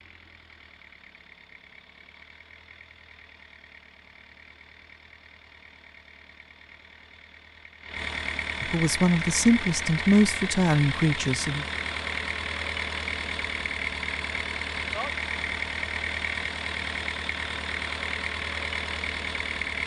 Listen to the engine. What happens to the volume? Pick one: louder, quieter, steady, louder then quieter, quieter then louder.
louder.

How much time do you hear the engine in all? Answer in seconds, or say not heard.
20 s.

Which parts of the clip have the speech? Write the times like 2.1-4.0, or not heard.
8.6-11.7.